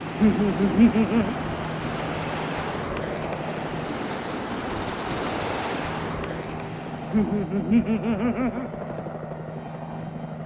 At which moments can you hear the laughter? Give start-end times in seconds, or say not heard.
0.2-1.4, 7.1-8.7.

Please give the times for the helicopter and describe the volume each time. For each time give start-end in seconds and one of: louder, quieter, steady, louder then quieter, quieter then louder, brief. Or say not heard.
0.0-10.4 steady.